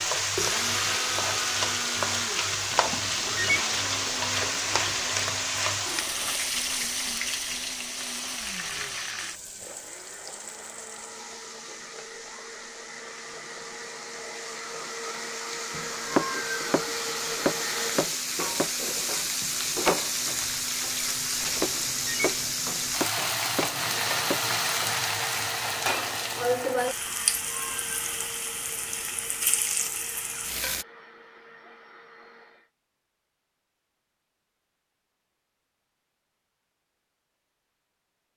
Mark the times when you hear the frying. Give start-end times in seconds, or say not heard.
0.0-30.9.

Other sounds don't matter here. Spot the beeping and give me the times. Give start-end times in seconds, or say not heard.
2.7-3.6, 21.4-22.4.